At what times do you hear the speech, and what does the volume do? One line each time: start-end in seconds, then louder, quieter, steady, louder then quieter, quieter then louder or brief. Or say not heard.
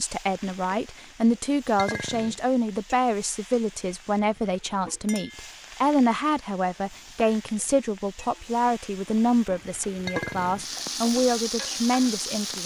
0.0-12.6 steady.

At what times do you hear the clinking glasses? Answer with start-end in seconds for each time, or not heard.
1.8-2.4, 5.0-5.5, 10.1-10.7.